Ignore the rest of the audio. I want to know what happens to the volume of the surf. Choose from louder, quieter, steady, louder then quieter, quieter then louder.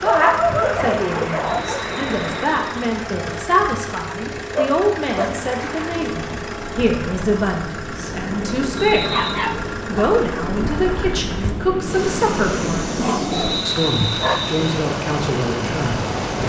quieter then louder.